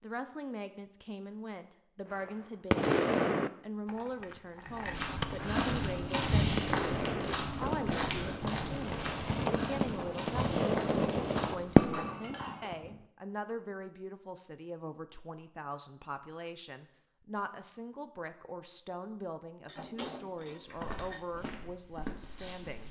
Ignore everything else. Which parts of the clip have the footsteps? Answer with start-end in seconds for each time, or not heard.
4.6-11.9, 20.6-22.8.